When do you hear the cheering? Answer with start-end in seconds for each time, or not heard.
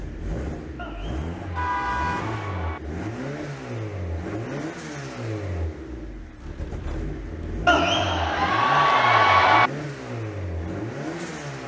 0.8-2.8, 7.7-9.7.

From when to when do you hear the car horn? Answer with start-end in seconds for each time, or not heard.
1.6-2.5.